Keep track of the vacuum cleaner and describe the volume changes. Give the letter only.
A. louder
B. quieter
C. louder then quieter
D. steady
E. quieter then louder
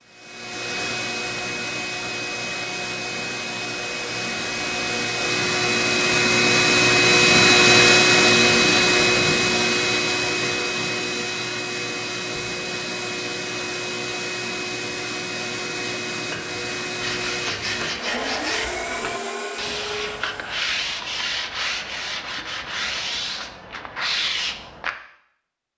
C.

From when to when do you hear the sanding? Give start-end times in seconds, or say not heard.
17.0-24.9.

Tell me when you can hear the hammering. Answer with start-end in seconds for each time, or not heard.
not heard.